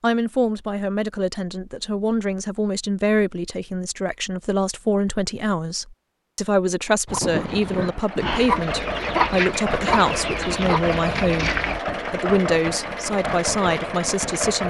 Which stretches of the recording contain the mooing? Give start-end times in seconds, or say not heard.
not heard.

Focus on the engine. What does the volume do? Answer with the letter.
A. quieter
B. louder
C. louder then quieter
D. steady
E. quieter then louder
D.